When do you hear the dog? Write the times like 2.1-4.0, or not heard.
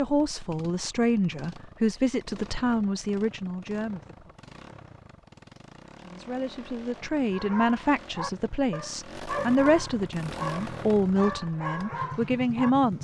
7.3-12.7.